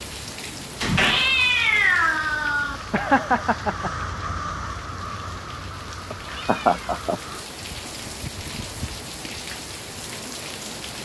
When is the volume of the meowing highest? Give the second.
2 s.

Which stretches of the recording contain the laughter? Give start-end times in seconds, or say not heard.
2.9-3.9, 6.2-7.2.